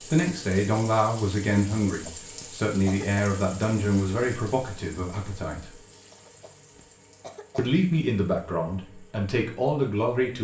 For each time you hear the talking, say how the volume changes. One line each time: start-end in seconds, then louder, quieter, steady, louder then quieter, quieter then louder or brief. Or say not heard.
0.0-5.8 quieter
7.5-10.3 brief.